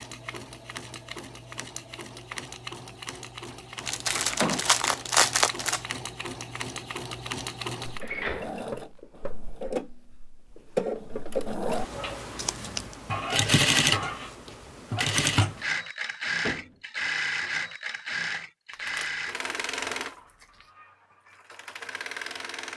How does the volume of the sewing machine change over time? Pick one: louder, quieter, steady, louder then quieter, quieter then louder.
louder then quieter.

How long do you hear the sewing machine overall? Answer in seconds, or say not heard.
23 s.